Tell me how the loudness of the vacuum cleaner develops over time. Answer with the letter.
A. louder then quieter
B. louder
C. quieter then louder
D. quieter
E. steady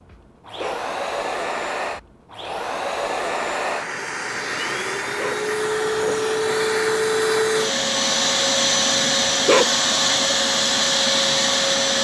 B.